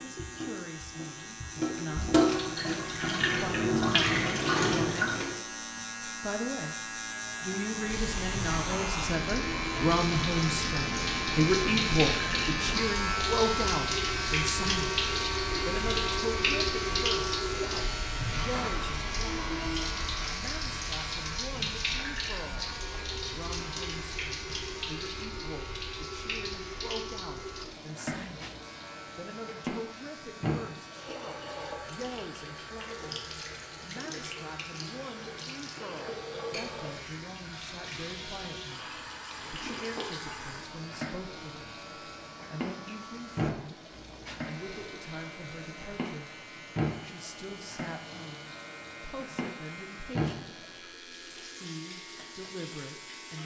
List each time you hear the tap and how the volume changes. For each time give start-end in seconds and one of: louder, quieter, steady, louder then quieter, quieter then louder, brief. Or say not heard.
0.0-5.4 louder
7.7-53.4 quieter.